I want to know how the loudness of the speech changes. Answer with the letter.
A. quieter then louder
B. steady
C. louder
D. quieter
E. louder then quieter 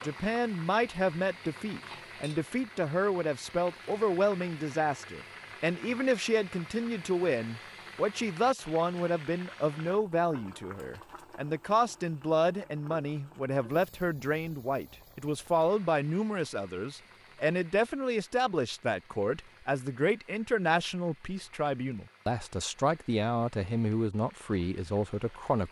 B.